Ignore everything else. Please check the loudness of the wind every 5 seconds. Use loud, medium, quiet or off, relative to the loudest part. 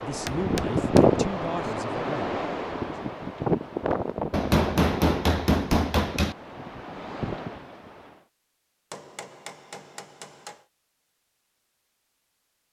loud, medium, off.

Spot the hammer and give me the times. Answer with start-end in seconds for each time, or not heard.
0.2-1.1, 4.3-6.3, 8.9-10.6.